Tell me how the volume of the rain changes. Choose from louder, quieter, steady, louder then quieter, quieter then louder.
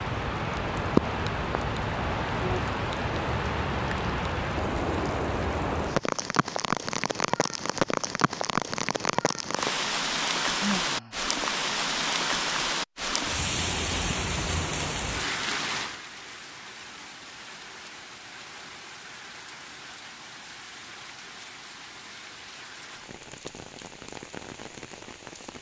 quieter.